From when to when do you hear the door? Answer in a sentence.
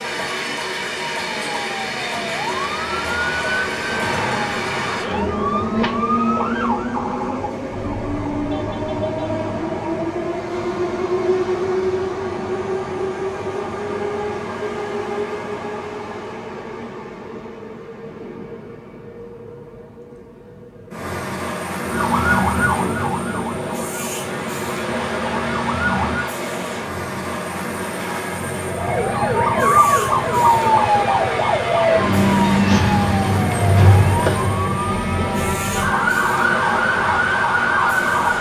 You can't hear the door here.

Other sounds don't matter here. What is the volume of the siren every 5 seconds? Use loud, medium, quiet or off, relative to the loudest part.
medium, medium, off, off, medium, loud, loud, loud.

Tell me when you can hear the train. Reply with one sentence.
You can hear the train from 0.0 to 38.3 s.